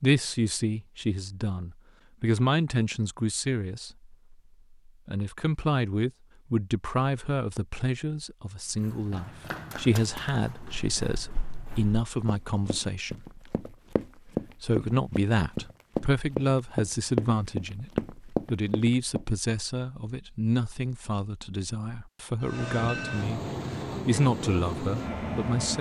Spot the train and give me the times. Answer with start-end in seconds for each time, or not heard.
22.4-25.7.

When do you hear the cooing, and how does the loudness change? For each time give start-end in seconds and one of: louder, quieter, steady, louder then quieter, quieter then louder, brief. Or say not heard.
not heard.